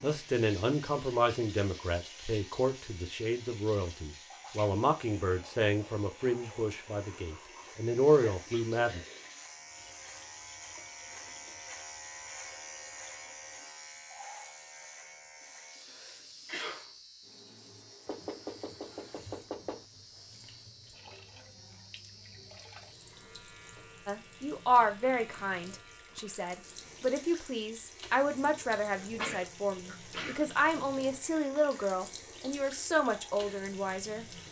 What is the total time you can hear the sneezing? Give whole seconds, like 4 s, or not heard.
4 s.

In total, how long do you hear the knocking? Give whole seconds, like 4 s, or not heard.
2 s.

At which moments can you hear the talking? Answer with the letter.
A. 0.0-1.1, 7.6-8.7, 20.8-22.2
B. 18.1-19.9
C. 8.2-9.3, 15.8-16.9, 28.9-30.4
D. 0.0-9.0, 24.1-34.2
D.